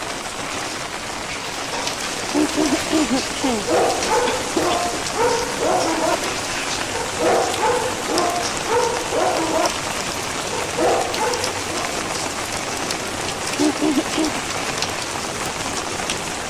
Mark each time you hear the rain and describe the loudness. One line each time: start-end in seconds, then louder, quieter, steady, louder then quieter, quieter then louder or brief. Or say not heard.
0.0-16.4 steady.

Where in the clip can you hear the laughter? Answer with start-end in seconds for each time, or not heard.
2.3-4.8, 13.6-14.4.